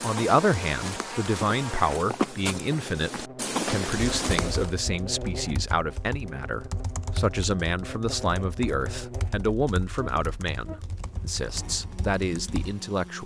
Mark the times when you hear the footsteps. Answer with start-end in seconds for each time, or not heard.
0.0-4.7.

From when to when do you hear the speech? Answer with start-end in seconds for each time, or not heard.
0.0-13.2.